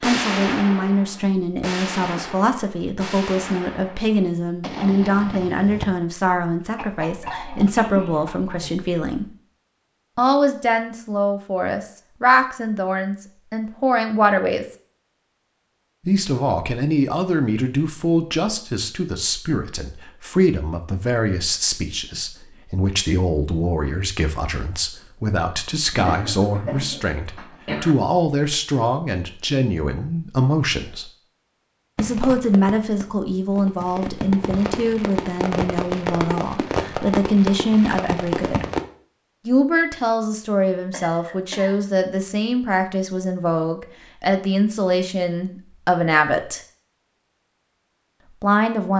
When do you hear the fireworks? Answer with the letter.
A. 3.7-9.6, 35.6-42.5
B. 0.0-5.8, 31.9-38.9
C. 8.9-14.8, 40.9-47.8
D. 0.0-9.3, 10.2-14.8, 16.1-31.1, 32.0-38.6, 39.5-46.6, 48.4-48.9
B.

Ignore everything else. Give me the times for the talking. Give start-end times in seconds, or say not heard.
0.0-9.3, 10.2-14.8, 16.1-31.1, 32.0-38.6, 39.5-46.6, 48.4-48.9.